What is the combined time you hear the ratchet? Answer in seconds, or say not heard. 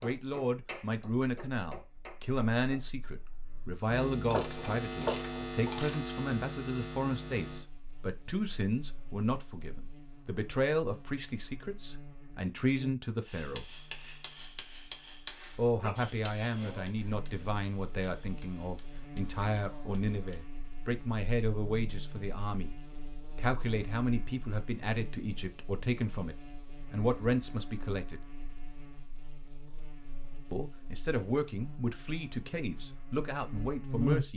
2 s.